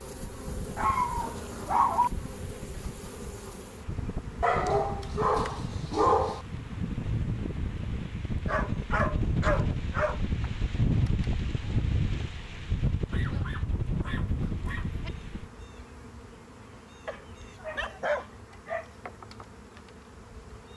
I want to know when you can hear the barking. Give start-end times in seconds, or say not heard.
0.8-2.1, 4.4-6.5, 8.4-10.2, 13.1-15.1, 17.1-18.9.